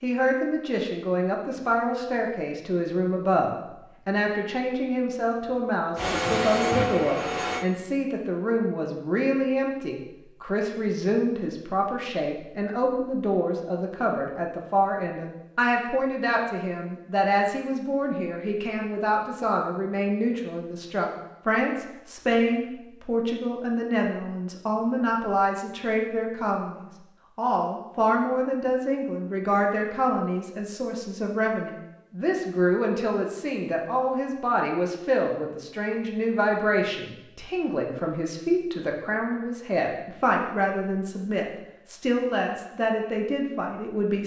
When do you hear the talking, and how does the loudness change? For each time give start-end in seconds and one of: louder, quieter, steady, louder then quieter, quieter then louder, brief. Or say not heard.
0.0-44.2 steady.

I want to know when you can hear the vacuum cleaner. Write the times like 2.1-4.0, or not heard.
6.0-7.7.